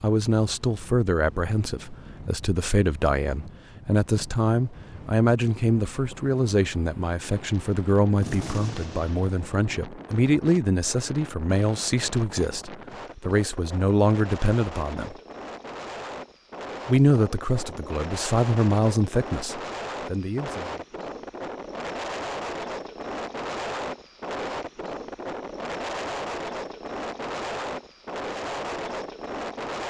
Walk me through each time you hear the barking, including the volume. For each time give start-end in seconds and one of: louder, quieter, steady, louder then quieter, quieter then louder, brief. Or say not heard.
not heard.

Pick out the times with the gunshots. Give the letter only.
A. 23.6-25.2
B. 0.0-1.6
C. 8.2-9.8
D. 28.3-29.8
C.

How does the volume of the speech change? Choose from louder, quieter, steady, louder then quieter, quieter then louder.
steady.